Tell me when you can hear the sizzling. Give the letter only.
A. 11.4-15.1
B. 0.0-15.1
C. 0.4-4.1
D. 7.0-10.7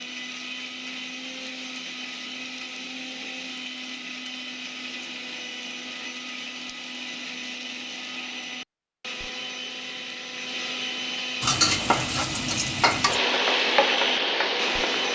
A.